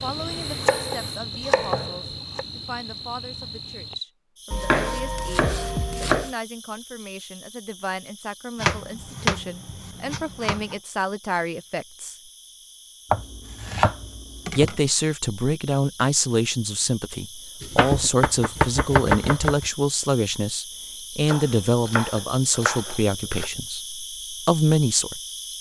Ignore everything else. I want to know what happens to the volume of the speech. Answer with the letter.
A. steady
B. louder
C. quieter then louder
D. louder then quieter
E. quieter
B.